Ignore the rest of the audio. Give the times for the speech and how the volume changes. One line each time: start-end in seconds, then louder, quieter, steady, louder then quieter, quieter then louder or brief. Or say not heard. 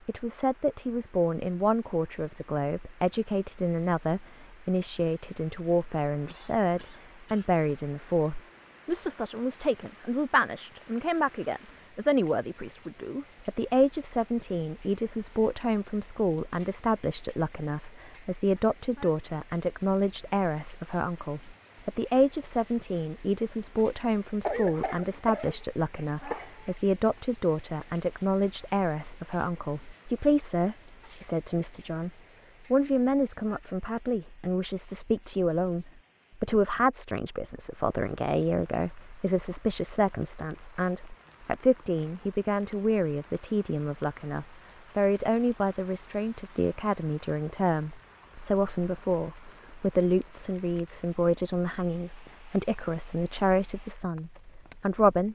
0.1-32.1 steady
32.7-55.3 steady.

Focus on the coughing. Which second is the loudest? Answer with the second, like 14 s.
25 s.